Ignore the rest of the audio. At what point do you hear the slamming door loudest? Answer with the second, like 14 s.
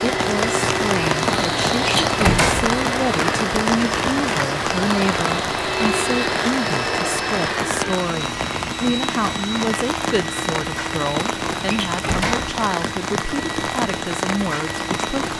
2 s.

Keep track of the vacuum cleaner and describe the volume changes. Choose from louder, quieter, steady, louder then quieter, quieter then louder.
quieter.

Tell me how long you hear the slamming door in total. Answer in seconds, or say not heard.
2 s.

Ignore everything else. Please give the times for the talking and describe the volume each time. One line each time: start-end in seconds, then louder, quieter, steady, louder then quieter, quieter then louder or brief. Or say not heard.
0.0-15.2 steady.